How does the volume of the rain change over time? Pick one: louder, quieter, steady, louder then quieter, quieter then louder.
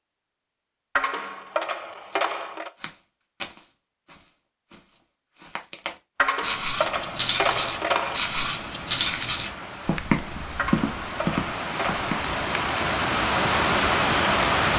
louder.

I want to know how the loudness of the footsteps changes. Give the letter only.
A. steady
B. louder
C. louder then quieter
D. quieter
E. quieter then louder
B.